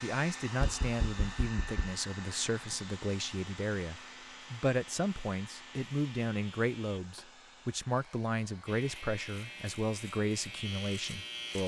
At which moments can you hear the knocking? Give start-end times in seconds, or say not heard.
0.6-1.9, 7.0-7.4.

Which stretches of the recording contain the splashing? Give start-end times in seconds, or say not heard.
not heard.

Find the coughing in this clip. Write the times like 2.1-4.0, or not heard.
not heard.